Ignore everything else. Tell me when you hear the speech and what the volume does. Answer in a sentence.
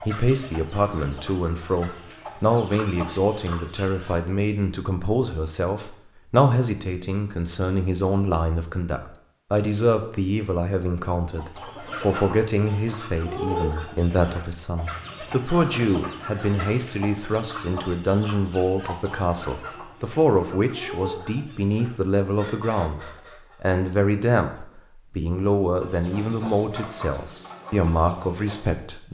You can hear the speech from 0.0 to 29.1 s, at a steady volume.